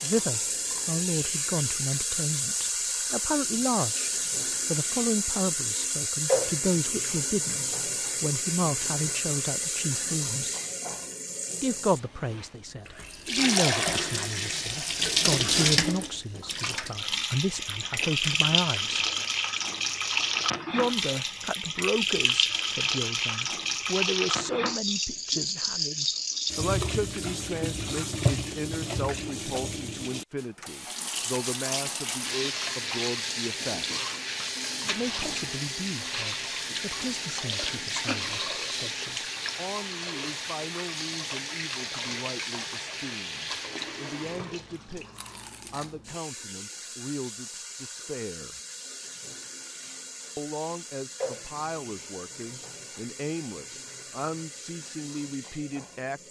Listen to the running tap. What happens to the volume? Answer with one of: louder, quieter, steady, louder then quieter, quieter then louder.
quieter.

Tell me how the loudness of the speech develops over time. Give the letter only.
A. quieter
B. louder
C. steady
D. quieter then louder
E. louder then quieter
A.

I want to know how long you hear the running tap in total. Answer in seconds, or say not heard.
56 s.